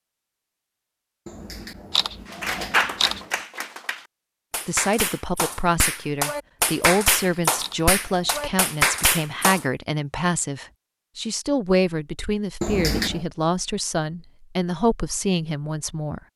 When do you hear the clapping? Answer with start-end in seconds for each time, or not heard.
2.3-9.7.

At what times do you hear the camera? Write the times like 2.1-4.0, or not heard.
1.2-3.2, 7.0-8.4, 12.6-13.2.